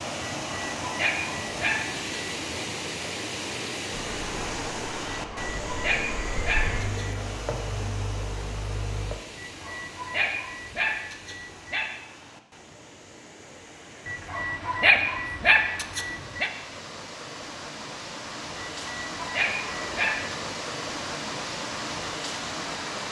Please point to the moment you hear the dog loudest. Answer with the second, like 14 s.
15 s.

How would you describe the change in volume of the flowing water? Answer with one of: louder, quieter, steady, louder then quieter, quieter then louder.
quieter then louder.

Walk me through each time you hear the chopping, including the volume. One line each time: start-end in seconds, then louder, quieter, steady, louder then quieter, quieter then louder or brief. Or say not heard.
not heard.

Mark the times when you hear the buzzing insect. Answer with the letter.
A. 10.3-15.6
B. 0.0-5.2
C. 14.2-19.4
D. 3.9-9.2
D.